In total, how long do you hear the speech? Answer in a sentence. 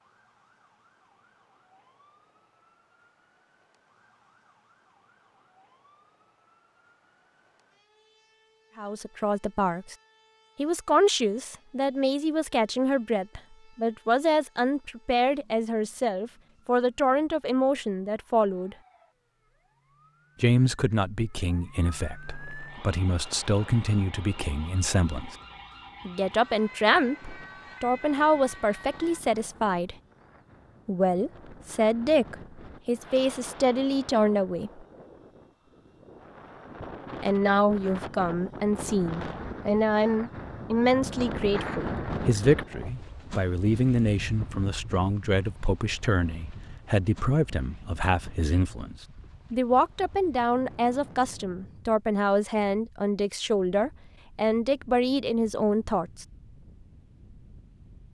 You can hear the speech for 41 seconds altogether.